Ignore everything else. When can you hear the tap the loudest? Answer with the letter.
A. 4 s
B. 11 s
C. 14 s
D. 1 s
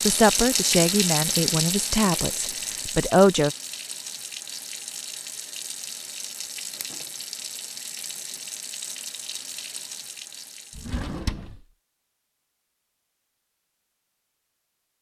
D.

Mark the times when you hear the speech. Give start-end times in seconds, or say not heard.
0.1-3.5.